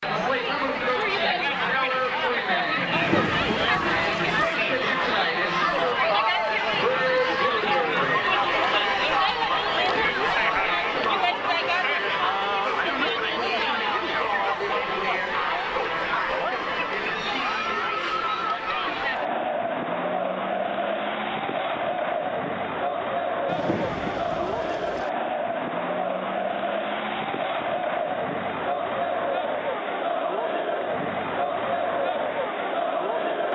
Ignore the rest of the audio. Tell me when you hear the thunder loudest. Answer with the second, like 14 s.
3 s.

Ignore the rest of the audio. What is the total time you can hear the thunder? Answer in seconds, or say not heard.
3 s.